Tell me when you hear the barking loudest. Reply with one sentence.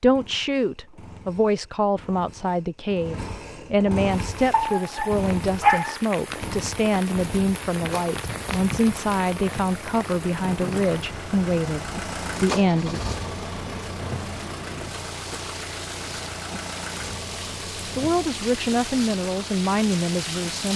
The loudest moment of the barking is at 6 seconds.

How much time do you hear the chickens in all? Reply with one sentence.
You can't hear the chickens here.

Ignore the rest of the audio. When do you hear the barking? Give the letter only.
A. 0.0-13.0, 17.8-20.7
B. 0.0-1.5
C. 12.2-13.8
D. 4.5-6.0
D.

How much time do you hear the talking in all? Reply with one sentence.
You can hear the talking for 16 seconds altogether.